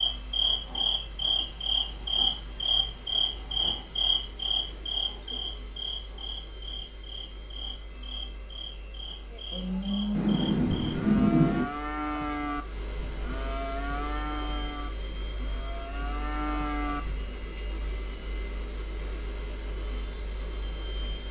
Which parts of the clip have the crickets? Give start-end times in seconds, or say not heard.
0.0-13.6.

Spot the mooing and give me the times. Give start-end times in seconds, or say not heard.
9.3-17.2.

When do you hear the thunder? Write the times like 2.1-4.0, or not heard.
10.1-11.7.